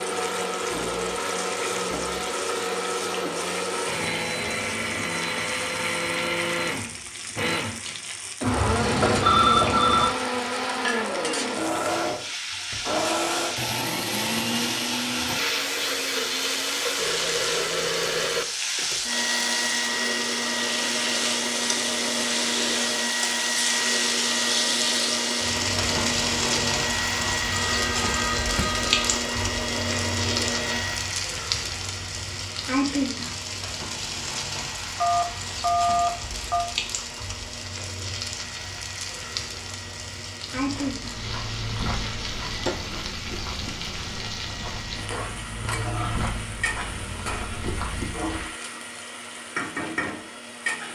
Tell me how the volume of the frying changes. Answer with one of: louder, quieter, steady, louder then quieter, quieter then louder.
louder then quieter.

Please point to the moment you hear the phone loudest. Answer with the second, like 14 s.
9 s.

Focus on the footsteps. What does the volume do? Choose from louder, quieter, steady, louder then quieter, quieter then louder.
quieter then louder.